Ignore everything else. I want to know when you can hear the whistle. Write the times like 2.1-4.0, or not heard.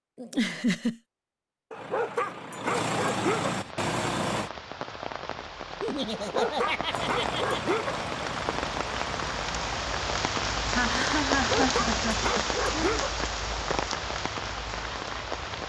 not heard.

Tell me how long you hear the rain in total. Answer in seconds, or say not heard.
12 s.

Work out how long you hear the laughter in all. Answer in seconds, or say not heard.
5 s.